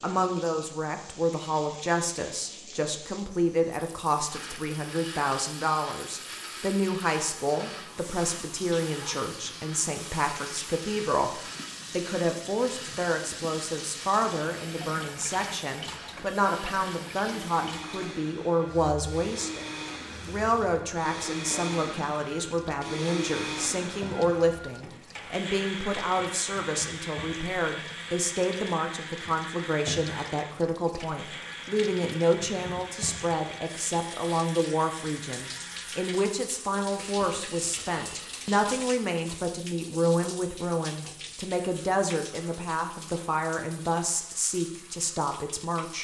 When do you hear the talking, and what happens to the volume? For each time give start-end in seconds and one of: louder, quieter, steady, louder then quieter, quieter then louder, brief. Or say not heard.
0.0-45.9 steady.